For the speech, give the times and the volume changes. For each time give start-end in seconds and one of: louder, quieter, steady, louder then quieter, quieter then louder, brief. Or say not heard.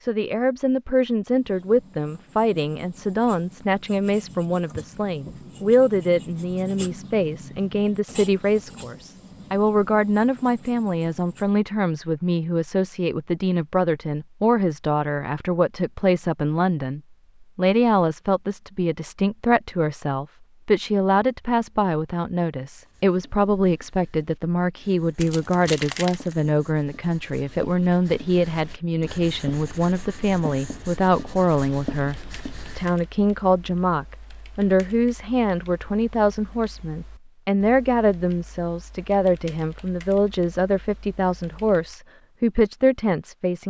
0.0-43.6 steady.